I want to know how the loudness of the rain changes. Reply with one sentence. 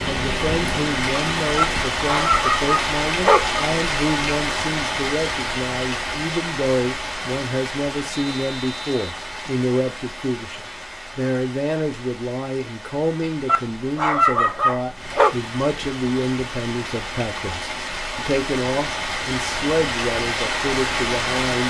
The volume of the rain goes down, then up.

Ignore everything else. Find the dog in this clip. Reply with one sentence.
You can hear the dog from 1.6 to 3.6 s and from 13.4 to 15.3 s.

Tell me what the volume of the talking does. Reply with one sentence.
The loudness of the talking stays about the same.